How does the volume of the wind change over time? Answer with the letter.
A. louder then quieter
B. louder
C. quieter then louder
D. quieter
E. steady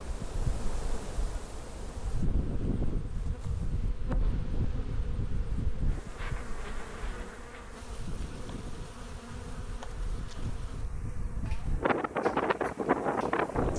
C.